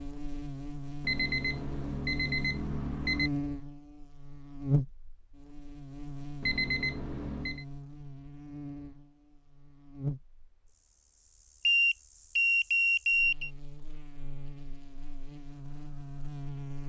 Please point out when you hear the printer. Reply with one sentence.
The printer can't be heard in this clip.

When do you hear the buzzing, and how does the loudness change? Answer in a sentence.
You can hear the buzzing from 0.0 to 16.8 s, getting quieter.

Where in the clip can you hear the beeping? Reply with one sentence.
The beeping can be heard from 1.0 to 3.3 s, from 6.4 to 7.7 s and from 11.7 to 13.5 s.